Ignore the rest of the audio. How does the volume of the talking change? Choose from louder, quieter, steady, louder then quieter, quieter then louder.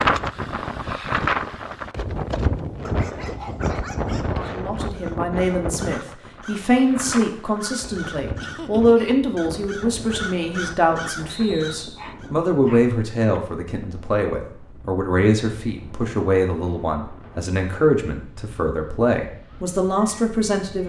steady.